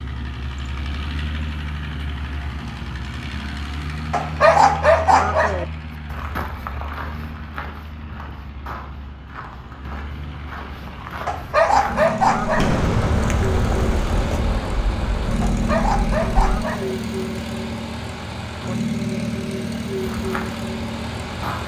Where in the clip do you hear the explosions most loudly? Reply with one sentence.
The loudest moment of the explosions is at 13 seconds.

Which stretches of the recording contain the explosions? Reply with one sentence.
You can hear the explosions from 12.6 to 16.6 s.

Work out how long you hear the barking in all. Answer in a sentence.
You can hear the barking for 5 seconds altogether.